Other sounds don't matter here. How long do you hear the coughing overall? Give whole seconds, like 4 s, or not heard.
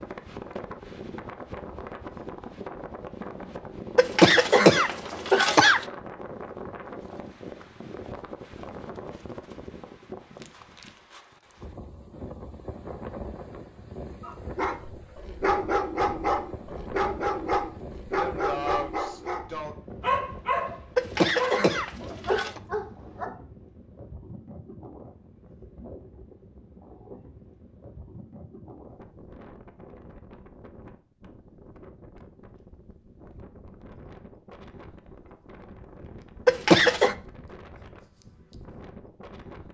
4 s.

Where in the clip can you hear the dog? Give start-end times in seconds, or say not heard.
14.2-23.3.